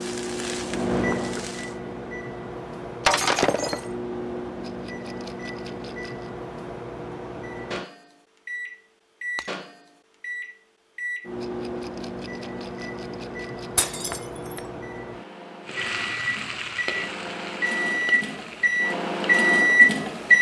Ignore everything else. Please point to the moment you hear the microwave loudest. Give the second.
20 s.